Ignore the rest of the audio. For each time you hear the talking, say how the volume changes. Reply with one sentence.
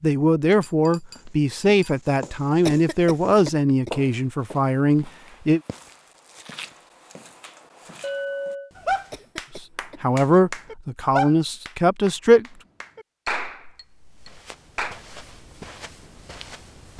You can hear the talking from 0.0 to 5.6 s, at a steady volume; and briefly from 9.6 to 12.4 s.